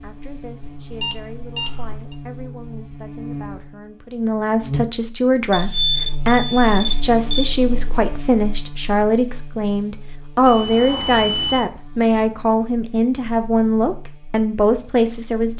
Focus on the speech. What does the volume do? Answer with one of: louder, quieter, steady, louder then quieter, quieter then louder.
louder.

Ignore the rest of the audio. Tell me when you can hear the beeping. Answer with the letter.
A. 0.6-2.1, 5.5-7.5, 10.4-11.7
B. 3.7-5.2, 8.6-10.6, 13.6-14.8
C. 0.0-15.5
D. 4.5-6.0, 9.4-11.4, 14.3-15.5
A.